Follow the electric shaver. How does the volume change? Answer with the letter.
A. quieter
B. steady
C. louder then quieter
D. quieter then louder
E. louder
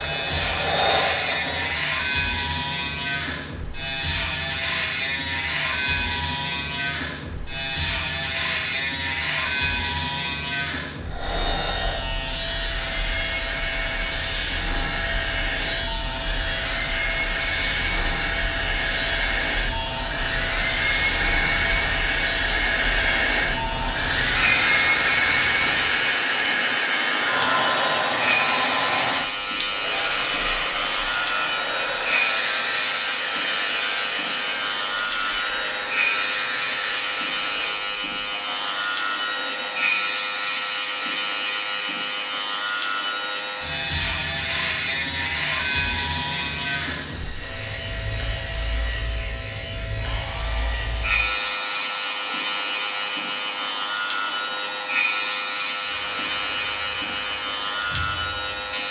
B.